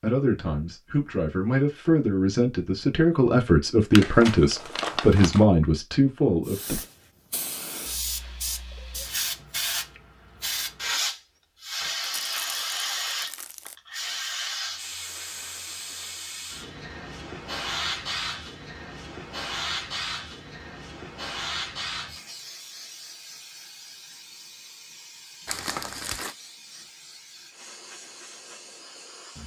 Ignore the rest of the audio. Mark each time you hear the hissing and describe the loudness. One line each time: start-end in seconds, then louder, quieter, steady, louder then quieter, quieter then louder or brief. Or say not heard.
6.5-29.4 quieter.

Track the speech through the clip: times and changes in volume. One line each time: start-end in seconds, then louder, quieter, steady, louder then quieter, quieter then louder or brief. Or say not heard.
0.0-6.8 louder.